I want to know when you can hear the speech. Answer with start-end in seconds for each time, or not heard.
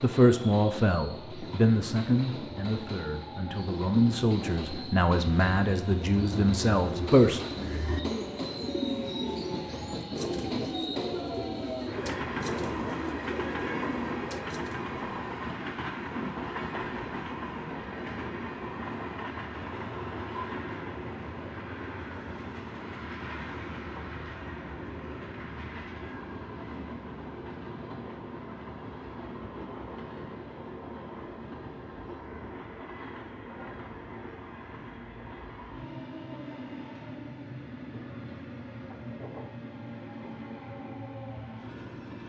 0.0-7.4.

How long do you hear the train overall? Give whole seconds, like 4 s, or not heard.
42 s.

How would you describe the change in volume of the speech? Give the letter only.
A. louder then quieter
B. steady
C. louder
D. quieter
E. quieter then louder
B.